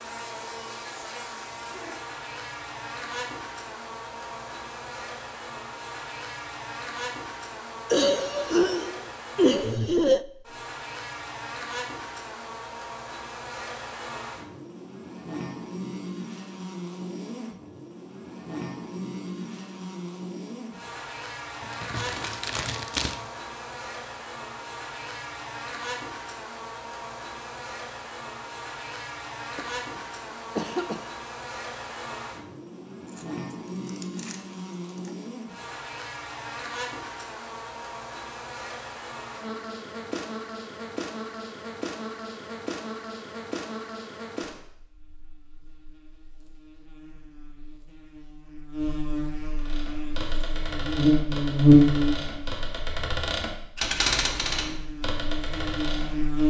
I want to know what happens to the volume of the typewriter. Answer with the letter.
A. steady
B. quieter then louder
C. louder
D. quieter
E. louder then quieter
E.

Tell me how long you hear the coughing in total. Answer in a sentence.
The coughing can be heard for 4 seconds in total.